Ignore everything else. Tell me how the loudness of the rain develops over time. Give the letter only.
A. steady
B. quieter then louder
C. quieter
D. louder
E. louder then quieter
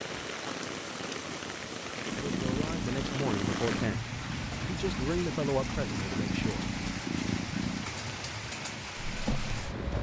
A.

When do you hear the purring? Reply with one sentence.
The purring can be heard from 2.1 to 9.9 s.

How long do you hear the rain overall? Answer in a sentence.
You can hear the rain for 10 seconds altogether.